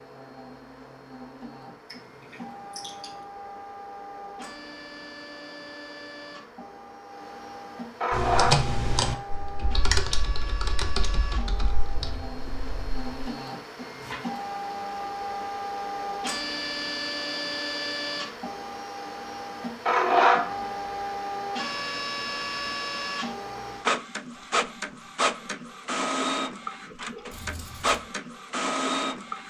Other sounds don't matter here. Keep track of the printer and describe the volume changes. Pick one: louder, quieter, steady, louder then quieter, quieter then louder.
louder.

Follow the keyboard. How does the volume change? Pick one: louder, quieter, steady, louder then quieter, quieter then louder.
quieter.